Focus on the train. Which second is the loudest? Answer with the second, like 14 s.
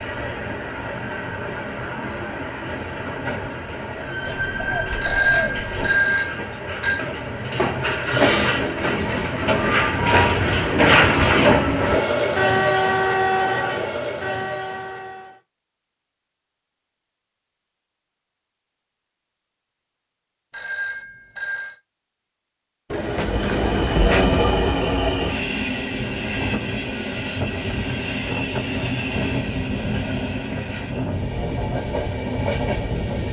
11 s.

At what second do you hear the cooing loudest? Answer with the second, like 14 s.
24 s.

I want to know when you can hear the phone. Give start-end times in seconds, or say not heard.
5.0-7.0, 20.5-21.8.